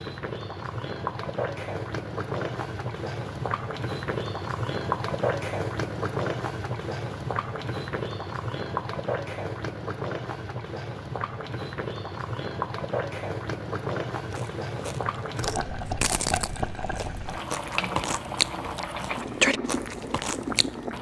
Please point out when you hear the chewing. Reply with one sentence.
The chewing can be heard from 14.3 to 20.7 s.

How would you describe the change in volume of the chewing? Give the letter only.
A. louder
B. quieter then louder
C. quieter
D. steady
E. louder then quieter
A.